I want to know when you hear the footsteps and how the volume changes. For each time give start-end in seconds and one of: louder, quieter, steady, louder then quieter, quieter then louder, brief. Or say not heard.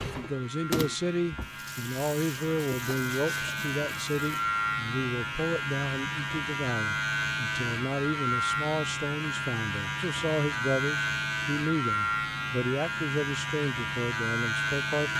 not heard.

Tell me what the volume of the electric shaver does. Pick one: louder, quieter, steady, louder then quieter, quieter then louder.
louder.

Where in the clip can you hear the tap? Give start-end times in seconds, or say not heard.
0.0-4.5.